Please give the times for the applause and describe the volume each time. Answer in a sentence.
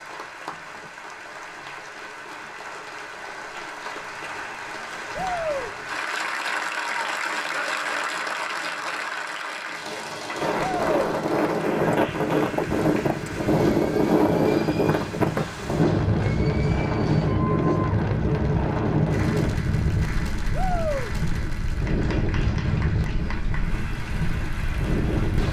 You can hear the applause from 0.0 to 25.4 s, getting louder then quieter.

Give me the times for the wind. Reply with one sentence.
You can hear the wind from 10.3 to 25.4 s.